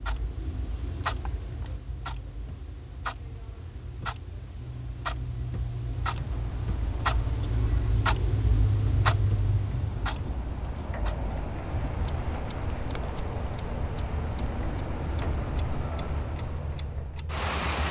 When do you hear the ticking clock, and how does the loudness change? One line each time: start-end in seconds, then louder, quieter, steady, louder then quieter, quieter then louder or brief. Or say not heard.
0.0-17.8 louder then quieter.